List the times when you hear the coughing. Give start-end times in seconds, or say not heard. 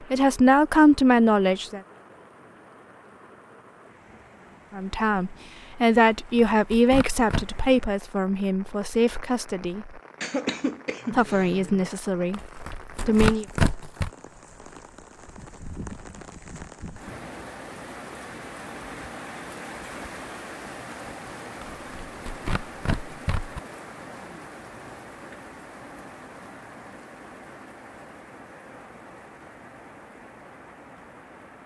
10.2-11.5.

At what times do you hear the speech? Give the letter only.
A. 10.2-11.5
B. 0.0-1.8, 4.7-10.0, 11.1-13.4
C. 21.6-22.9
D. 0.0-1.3
B.